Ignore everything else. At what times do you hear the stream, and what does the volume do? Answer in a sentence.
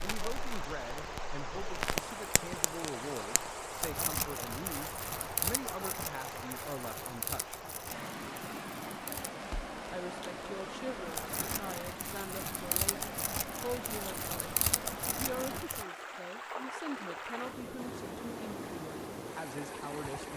You can hear the stream from 0.0 to 20.3 s, at a steady volume.